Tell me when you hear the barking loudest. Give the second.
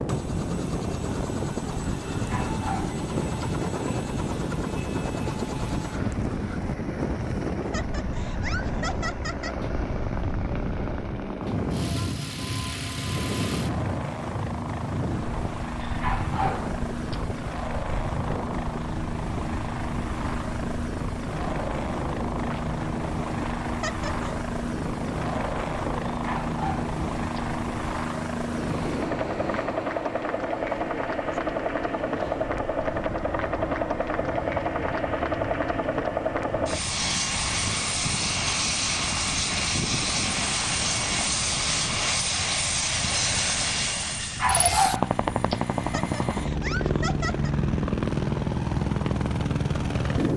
45 s.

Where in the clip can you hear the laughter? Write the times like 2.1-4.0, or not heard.
7.6-9.6, 23.7-24.4, 45.8-47.5.